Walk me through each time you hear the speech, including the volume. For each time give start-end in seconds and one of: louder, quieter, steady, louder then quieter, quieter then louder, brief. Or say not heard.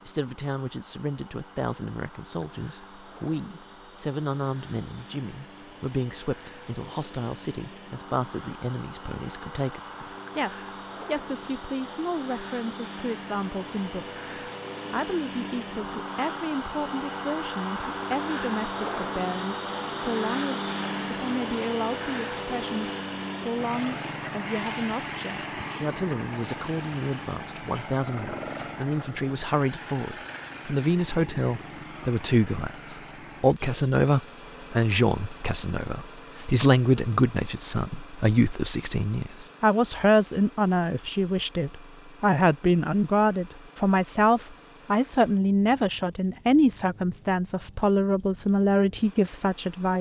0.1-49.9 louder.